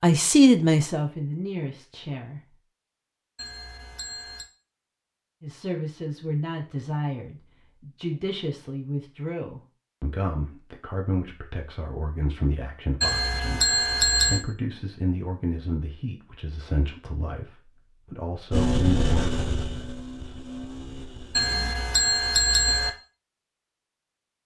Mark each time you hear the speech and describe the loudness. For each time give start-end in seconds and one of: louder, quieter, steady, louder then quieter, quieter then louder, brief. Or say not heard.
0.0-2.4 brief
5.4-19.4 steady.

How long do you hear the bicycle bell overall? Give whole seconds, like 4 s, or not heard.
4 s.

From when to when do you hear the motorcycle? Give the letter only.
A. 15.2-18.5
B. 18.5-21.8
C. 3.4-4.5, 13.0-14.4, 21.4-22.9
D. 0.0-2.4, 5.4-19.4
B.